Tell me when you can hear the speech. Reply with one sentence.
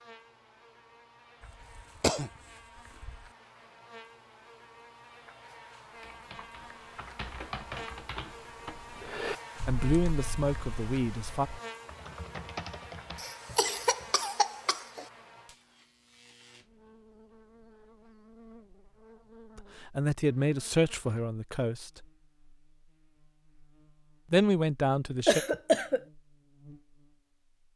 The speech can be heard from 9.7 to 11.5 s, from 19.6 to 22.0 s and from 24.3 to 25.4 s.